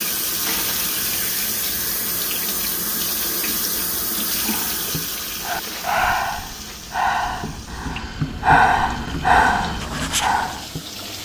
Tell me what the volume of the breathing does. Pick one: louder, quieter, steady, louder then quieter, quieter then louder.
louder.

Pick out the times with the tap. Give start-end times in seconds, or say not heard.
0.0-11.2.